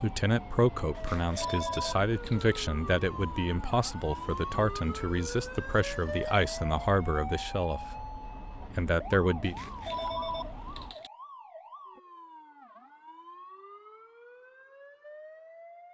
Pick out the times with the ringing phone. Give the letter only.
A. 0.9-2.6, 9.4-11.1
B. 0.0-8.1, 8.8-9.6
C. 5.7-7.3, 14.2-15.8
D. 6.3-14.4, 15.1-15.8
A.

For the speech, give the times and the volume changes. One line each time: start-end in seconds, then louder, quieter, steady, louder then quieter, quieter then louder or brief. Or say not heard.
0.0-8.1 steady
8.8-9.6 brief.